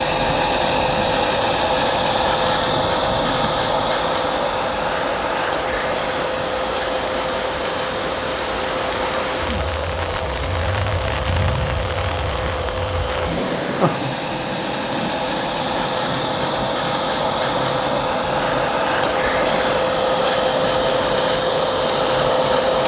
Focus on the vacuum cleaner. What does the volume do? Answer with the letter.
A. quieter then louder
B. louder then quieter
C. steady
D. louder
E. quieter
A.